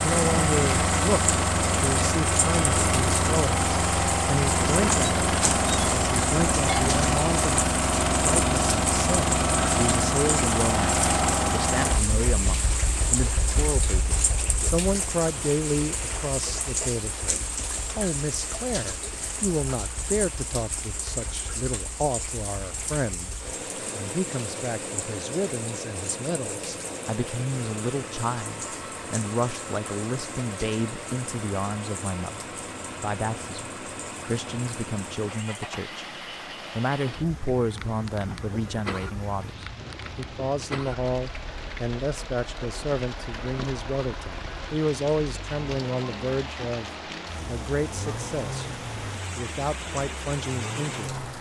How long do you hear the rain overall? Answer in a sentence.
You can hear the rain for 51 seconds altogether.